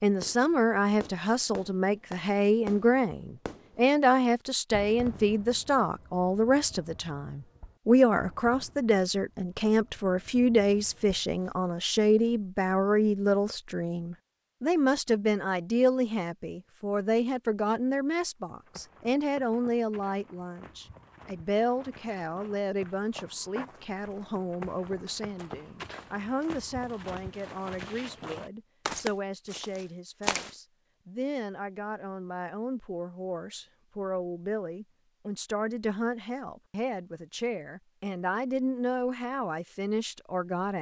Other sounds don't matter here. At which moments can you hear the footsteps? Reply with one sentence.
You can hear the footsteps from 18.4 to 30.6 s.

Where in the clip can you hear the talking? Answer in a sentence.
You can hear the talking from 0.0 to 40.7 s.